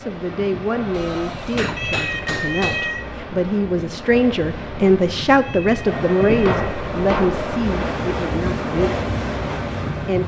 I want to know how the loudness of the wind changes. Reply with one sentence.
The loudness of the wind goes up.